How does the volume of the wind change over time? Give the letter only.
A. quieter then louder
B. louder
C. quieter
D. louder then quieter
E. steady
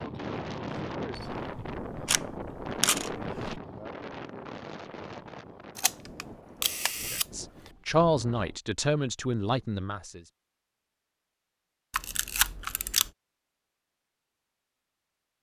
C.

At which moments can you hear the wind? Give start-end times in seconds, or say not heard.
0.0-8.6.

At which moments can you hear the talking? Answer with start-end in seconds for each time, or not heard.
7.1-10.2.